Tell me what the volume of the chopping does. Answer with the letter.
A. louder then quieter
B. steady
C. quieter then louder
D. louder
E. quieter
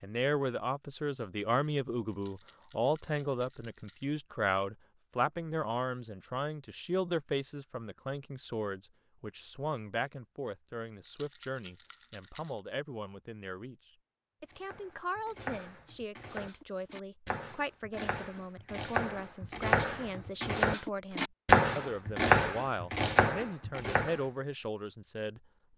D.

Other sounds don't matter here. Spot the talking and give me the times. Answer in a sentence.
The talking can be heard from 0.0 to 25.4 s.